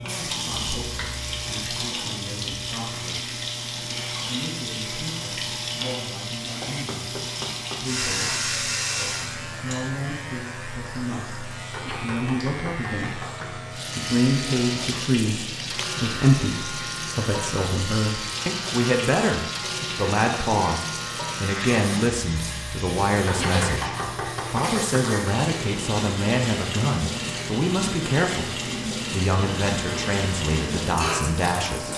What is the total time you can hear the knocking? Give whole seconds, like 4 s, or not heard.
5 s.